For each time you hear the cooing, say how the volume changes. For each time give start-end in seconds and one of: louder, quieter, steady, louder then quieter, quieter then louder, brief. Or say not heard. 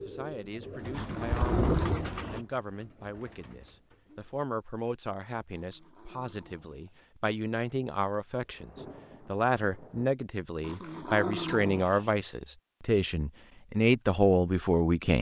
0.0-4.5 louder then quieter.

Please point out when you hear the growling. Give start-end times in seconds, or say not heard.
0.9-2.4, 5.5-7.0, 10.6-12.1.